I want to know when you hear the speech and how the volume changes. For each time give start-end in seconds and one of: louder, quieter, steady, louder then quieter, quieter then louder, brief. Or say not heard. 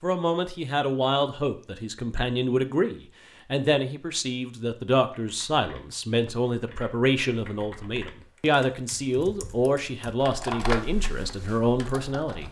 0.0-12.4 steady.